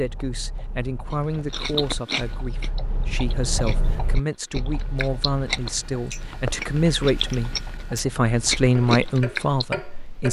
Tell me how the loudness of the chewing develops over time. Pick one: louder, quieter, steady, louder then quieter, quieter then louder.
quieter then louder.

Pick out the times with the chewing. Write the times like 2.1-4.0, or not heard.
1.1-9.7.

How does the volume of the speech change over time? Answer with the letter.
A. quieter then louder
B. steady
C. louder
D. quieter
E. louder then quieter
C.